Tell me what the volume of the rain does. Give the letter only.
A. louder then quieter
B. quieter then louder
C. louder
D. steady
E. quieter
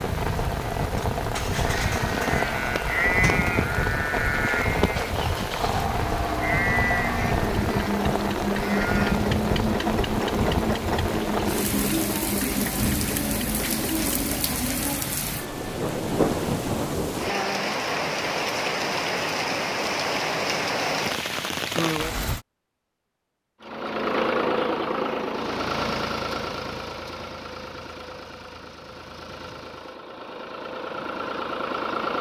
D.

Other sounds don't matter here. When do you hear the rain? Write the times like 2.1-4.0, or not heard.
0.0-22.4.